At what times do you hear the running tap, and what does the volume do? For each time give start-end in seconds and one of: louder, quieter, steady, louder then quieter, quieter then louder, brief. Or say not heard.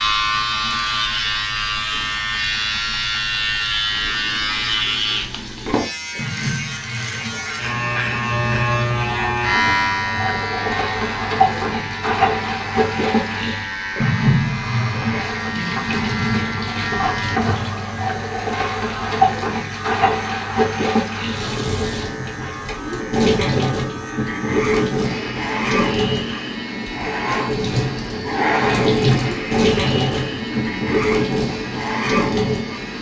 0.0-32.9 louder.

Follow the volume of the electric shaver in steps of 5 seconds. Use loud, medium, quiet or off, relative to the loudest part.
loud, loud, medium, medium, quiet, medium, medium.